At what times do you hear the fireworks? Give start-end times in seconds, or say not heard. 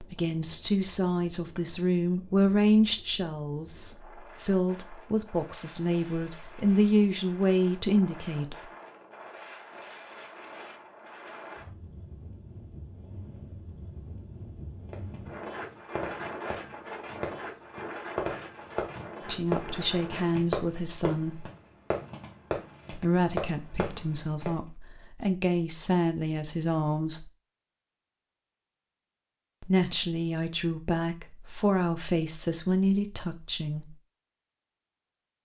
14.9-24.5.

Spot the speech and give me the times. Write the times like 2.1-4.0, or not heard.
0.0-8.6, 19.2-21.4, 22.9-27.3, 29.6-34.0.